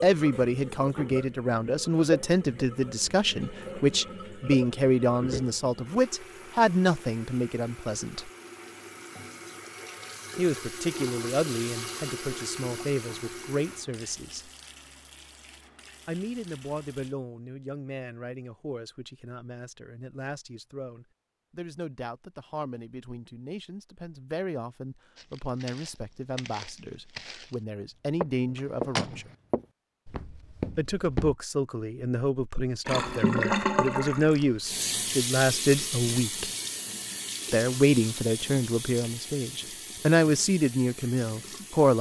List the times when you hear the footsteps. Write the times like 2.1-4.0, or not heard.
25.1-27.6, 28.2-31.4.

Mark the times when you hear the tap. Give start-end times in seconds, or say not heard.
0.1-17.1, 32.9-41.9.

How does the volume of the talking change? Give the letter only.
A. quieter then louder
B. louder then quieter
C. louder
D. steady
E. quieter
A.